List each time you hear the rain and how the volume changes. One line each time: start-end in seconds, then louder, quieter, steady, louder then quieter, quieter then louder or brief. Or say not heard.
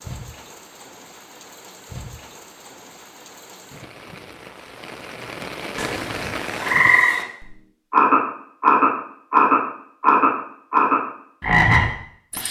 0.0-7.0 louder.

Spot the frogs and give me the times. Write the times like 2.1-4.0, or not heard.
5.8-12.4.